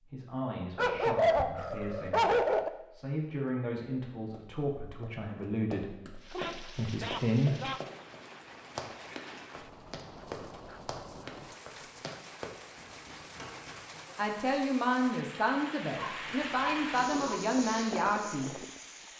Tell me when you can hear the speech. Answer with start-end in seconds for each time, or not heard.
0.0-7.6, 14.2-18.5.